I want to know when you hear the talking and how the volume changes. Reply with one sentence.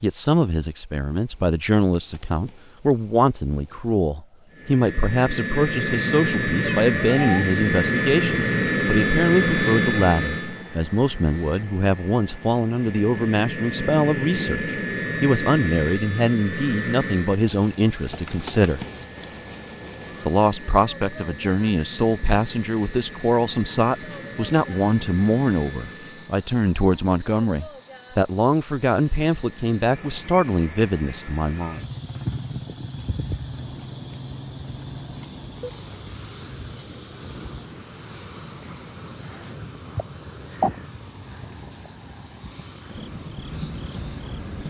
The talking can be heard from 0.0 to 18.9 s, at a steady volume; and from 20.2 to 31.9 s, at a steady volume.